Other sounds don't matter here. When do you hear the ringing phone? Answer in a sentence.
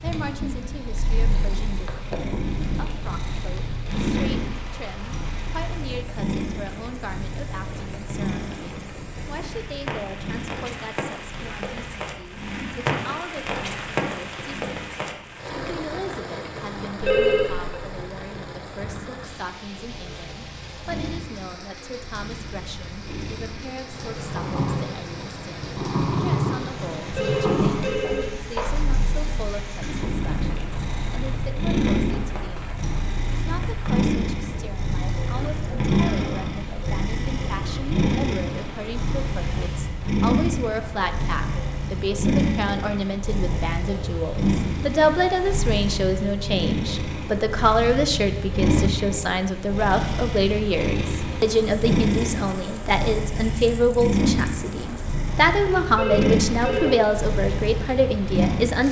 The ringing phone can be heard from 17.0 to 17.8 s, from 27.1 to 28.9 s and from 55.9 to 57.0 s.